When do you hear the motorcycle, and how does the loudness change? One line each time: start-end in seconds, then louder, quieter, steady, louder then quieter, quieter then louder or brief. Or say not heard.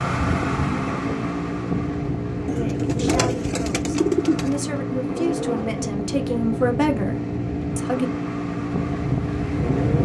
0.0-10.0 steady.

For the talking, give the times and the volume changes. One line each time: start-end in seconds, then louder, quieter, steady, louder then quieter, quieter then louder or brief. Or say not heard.
2.5-8.1 louder.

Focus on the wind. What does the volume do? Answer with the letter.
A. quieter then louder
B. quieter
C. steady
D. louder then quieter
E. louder
A.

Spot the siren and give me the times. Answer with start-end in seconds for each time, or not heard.
not heard.